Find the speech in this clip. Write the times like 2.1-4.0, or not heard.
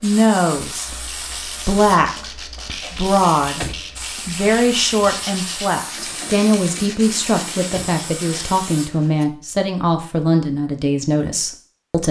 0.0-0.9, 1.6-12.0.